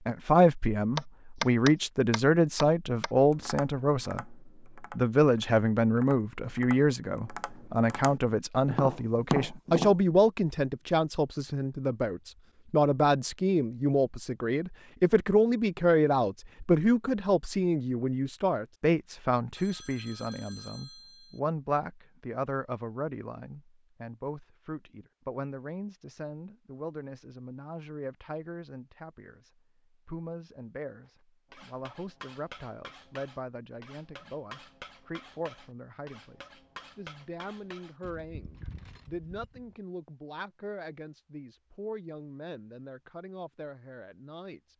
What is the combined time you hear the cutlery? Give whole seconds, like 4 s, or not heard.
8 s.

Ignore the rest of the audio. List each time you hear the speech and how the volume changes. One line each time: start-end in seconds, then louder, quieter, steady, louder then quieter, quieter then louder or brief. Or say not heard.
0.1-44.7 quieter.